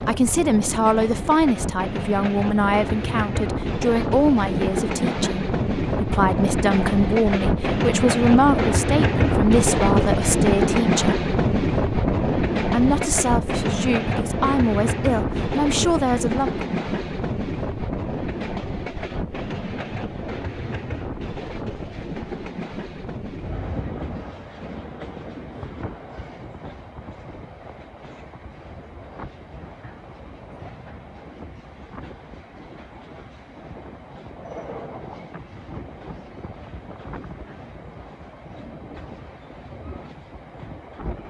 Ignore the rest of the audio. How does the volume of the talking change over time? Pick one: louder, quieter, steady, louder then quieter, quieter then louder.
steady.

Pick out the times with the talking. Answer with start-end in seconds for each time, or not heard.
0.1-11.2, 12.7-16.7.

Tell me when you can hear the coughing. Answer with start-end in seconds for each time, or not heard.
not heard.